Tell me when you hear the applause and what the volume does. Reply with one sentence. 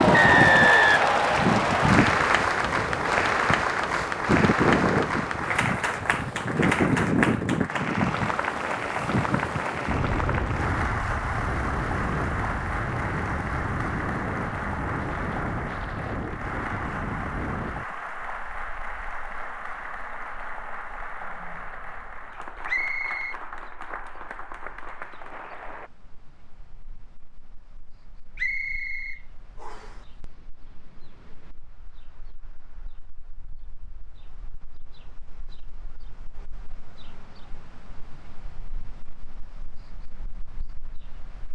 The applause can be heard from 0.0 to 25.9 s, getting quieter.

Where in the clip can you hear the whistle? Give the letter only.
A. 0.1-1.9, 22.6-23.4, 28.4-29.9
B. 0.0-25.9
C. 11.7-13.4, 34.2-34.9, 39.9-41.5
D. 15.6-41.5
A.